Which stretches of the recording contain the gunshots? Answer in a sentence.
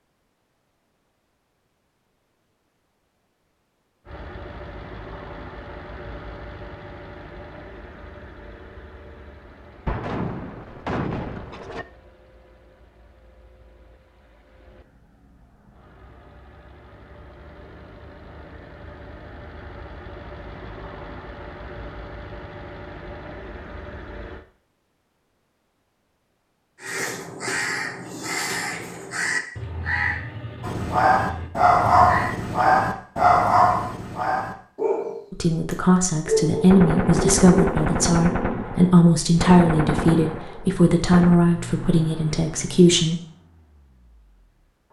You can hear the gunshots from 9.8 to 11.8 s and from 36.7 to 41.5 s.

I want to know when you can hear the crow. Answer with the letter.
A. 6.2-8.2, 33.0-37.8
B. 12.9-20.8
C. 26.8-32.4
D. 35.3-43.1
C.